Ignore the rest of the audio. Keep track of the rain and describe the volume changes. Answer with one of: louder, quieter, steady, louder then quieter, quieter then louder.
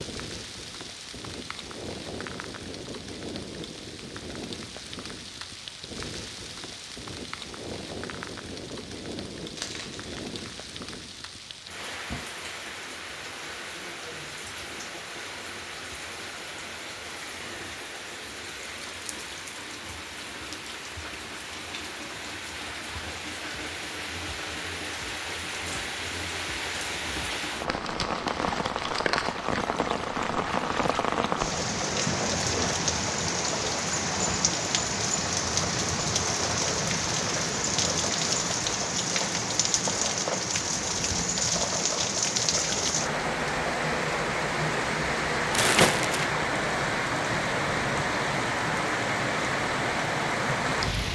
louder.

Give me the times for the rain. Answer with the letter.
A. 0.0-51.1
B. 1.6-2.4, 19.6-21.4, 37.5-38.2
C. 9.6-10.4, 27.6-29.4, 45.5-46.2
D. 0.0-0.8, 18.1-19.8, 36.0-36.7
A.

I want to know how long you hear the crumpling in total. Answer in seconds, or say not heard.
3 s.